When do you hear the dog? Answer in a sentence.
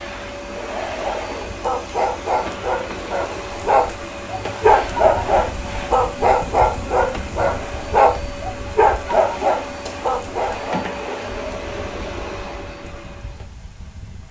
The dog can be heard from 0.8 to 10.9 s.